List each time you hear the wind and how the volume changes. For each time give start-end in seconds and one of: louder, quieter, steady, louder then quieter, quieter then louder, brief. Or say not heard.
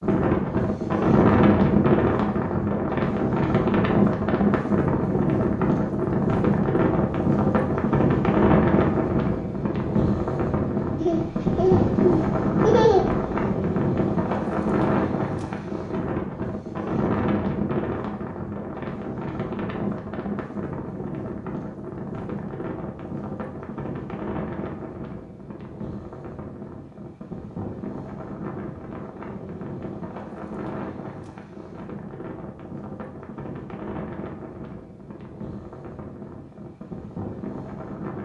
0.0-38.1 quieter.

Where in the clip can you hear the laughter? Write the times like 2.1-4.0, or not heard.
11.0-13.3.